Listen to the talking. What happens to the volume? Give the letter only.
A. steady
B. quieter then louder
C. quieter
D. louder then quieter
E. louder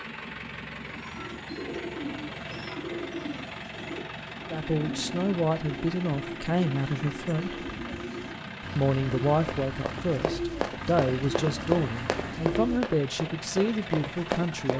A.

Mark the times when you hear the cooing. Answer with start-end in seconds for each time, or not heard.
0.8-12.8.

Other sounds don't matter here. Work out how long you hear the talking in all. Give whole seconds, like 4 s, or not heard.
9 s.